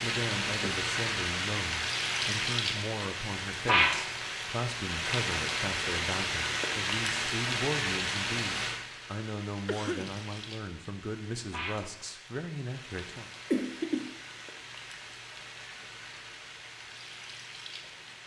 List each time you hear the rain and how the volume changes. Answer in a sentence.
The rain can be heard from 0.0 to 18.2 s, getting quieter.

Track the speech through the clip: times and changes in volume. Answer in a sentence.
The speech can be heard from 0.0 to 13.3 s, at a steady volume.